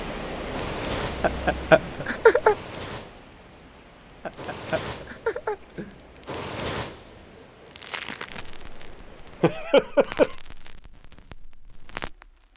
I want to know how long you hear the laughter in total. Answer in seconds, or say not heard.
4 s.